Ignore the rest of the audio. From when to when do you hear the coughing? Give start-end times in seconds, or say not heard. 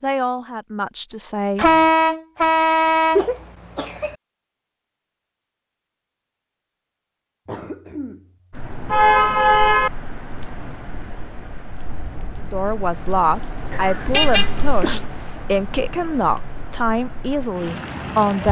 3.1-4.2, 7.5-9.1, 13.7-15.0.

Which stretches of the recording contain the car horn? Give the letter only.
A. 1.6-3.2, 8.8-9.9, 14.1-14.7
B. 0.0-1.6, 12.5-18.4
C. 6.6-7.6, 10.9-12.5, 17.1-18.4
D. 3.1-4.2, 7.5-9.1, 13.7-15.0
A.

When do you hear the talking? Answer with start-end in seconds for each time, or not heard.
0.0-1.6, 12.5-18.4.